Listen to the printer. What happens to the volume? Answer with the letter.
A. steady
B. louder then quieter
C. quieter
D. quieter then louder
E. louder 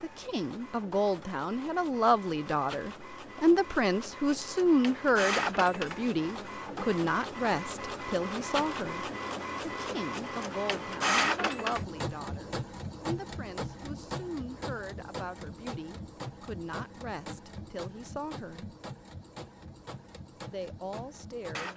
B.